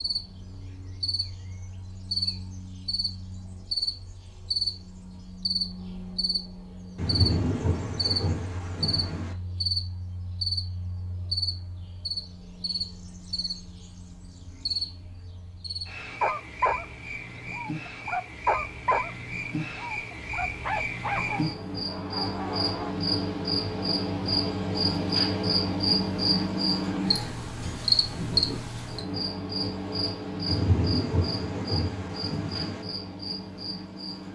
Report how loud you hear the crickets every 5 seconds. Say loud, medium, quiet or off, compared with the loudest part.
medium, medium, medium, medium, loud, loud, medium.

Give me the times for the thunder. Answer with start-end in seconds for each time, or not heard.
7.0-9.3, 30.4-32.9.